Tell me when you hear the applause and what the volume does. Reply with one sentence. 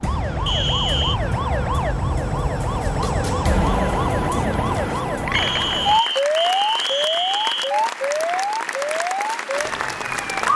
The applause can be heard from 5.6 to 10.5 s, at a steady volume.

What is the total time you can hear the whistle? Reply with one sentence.
The whistle can be heard for 3 seconds in total.